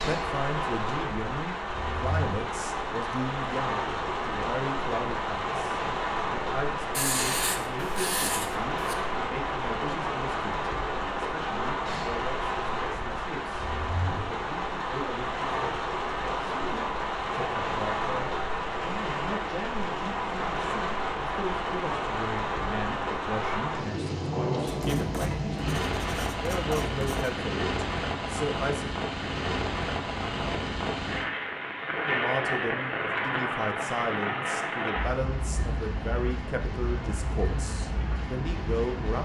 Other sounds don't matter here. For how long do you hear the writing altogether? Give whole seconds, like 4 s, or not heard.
5 s.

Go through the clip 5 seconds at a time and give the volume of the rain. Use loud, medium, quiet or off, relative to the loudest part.
loud, loud, loud, loud, loud, loud, loud, medium.